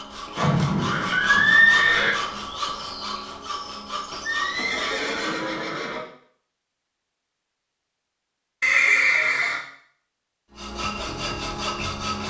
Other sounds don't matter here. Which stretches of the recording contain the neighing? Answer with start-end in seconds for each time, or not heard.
0.3-2.1, 4.2-6.0, 8.6-9.6.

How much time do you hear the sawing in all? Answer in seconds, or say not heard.
7 s.